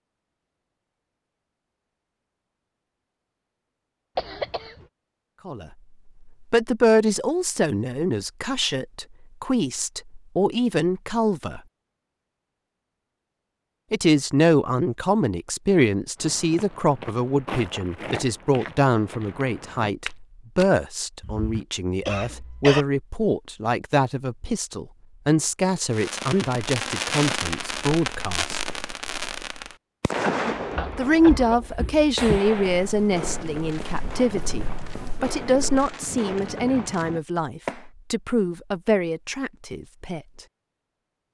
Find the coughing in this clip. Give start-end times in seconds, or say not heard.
4.2-4.8, 22.1-22.9, 30.1-31.6.